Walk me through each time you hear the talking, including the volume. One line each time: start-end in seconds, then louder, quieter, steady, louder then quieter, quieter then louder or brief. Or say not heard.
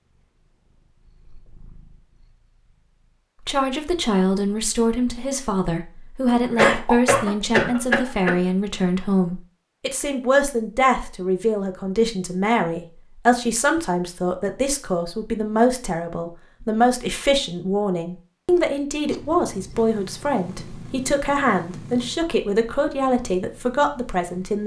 3.5-24.6 steady.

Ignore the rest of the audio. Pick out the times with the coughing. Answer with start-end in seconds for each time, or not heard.
6.5-8.3.